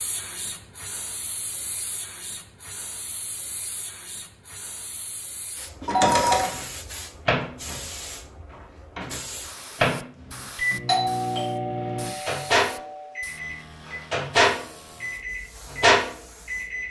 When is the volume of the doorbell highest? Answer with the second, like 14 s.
6 s.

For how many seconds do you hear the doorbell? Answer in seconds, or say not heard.
3 s.